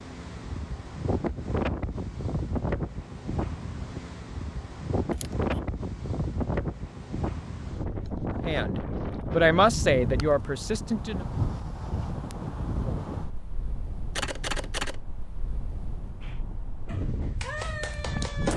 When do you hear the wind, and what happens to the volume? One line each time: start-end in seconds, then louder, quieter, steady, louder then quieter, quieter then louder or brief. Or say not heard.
0.0-18.5 quieter.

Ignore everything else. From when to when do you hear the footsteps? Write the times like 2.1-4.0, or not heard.
not heard.